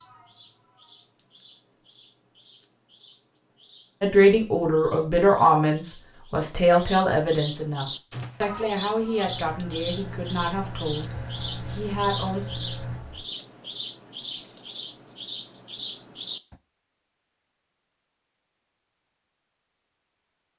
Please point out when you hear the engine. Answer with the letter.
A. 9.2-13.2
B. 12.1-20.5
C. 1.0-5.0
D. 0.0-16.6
A.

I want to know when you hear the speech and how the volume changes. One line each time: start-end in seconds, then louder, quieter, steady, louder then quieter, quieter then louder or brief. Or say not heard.
4.0-12.4 quieter.